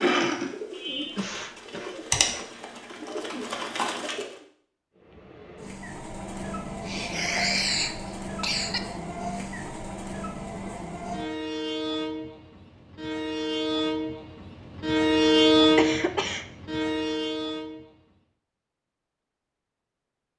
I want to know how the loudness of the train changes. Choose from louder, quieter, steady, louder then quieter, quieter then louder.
louder.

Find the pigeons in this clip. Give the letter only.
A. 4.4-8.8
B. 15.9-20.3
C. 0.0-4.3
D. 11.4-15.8
C.